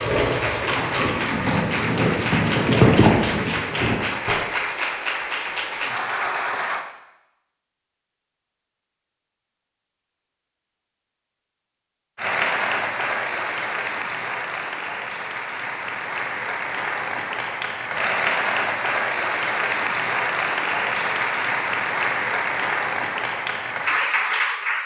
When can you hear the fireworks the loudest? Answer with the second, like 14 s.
3 s.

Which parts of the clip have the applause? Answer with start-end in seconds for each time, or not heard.
0.0-6.8, 12.2-24.8.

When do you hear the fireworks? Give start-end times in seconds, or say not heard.
0.0-4.5.